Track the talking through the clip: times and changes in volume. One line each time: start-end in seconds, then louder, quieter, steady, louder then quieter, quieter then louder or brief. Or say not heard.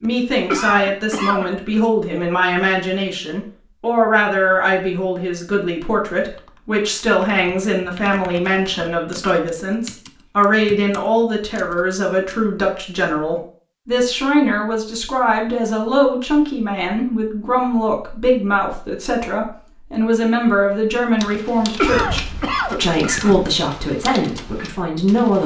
0.0-25.4 steady.